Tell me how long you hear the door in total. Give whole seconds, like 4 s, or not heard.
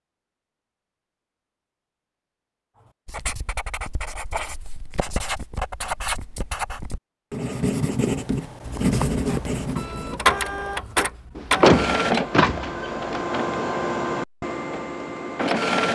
2 s.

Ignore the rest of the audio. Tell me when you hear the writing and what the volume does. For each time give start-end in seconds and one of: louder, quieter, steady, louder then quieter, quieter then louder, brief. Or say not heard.
3.0-10.2 louder.